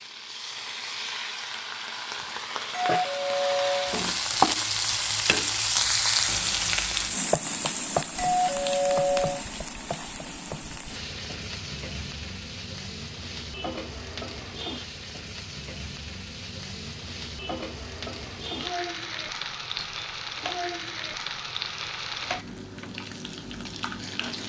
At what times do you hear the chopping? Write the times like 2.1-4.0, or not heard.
not heard.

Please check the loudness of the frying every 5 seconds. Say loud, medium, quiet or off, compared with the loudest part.
loud, loud, medium, medium, medium.